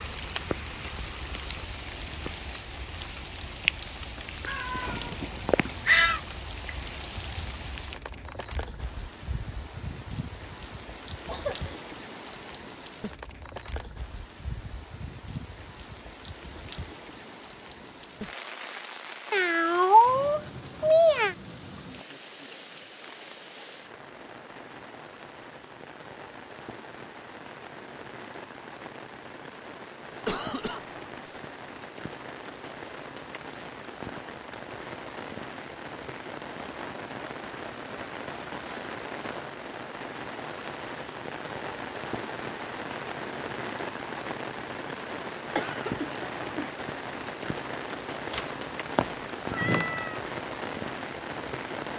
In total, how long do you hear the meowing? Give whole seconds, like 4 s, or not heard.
6 s.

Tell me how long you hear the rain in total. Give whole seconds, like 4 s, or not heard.
52 s.